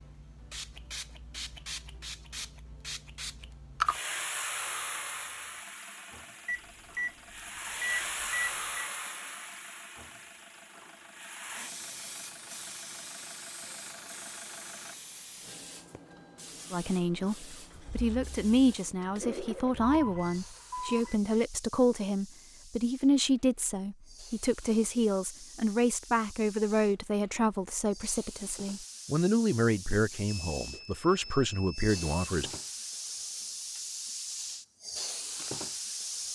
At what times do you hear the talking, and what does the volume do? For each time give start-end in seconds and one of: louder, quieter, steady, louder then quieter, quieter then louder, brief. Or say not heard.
16.7-32.5 steady.